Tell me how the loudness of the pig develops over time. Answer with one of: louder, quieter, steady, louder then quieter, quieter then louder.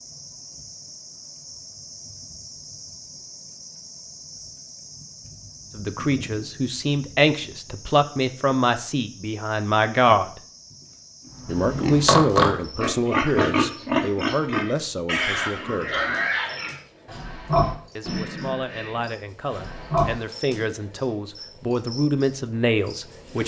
quieter.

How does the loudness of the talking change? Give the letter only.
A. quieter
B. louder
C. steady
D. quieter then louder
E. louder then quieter
D.